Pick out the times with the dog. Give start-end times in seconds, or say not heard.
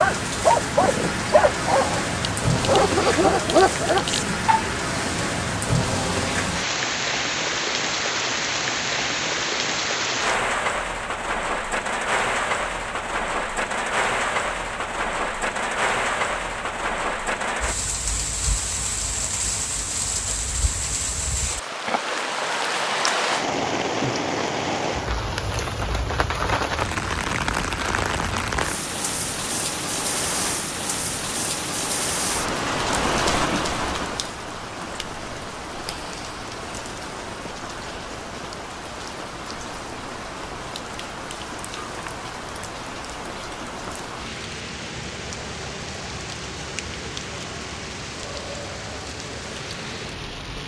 0.0-4.7.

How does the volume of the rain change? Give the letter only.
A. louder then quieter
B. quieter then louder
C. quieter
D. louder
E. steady
C.